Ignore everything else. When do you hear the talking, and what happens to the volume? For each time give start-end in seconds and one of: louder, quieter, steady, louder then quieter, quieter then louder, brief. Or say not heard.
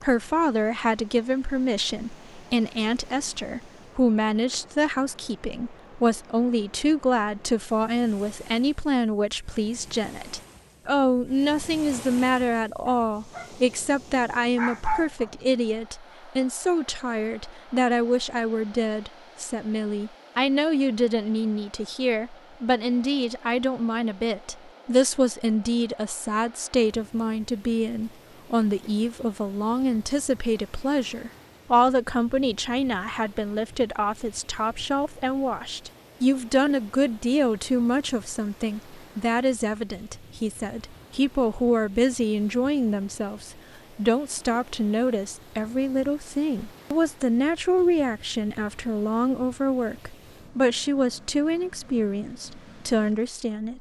0.0-53.7 steady.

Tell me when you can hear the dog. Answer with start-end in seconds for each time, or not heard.
12.8-15.4.